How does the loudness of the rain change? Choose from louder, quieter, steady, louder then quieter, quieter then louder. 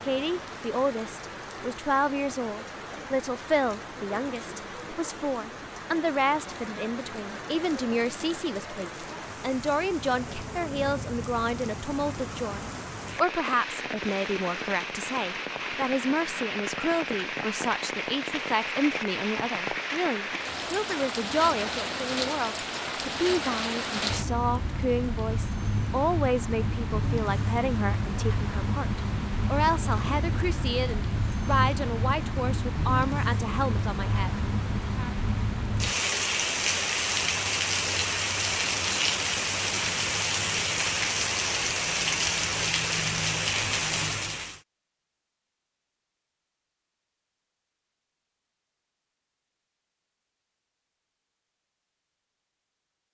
louder.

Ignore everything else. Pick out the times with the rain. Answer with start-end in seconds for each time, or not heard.
0.0-44.6.